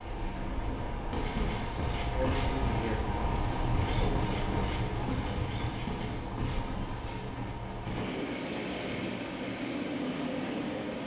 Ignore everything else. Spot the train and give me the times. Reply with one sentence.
The train can be heard from 0.0 to 11.0 s.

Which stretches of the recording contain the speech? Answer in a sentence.
The speech can be heard from 2.1 to 4.2 s.